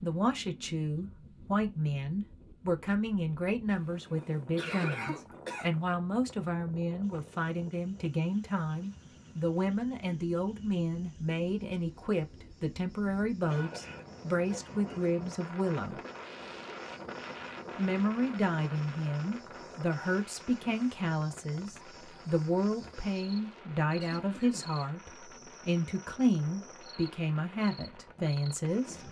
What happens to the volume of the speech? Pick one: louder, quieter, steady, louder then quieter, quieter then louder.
steady.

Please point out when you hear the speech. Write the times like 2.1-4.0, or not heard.
0.0-16.0, 17.8-29.0.